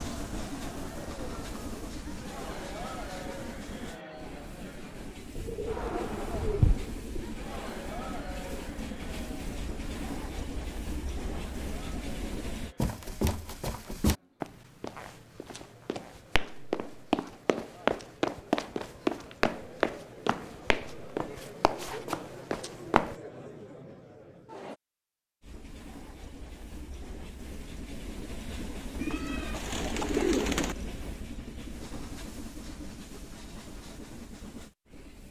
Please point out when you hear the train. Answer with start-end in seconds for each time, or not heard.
0.0-12.8, 25.4-35.2.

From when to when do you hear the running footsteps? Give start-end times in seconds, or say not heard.
12.8-23.1.